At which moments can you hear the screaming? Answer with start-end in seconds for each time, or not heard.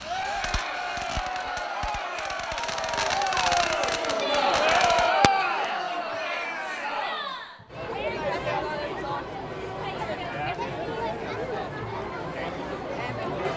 not heard.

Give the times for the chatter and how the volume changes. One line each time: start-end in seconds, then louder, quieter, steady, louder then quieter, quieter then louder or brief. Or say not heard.
0.0-13.5 louder then quieter.